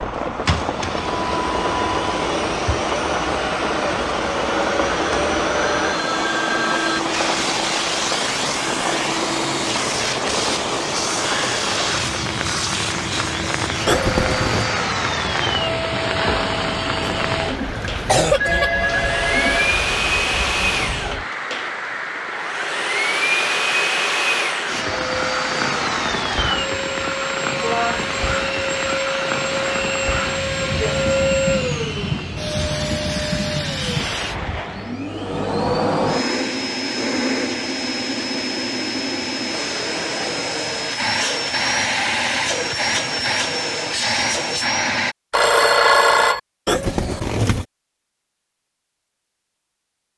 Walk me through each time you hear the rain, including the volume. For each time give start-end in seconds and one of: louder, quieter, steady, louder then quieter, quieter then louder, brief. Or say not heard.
0.0-35.0 steady.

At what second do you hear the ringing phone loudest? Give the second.
46 s.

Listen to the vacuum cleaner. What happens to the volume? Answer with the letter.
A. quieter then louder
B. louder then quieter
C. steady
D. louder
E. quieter
C.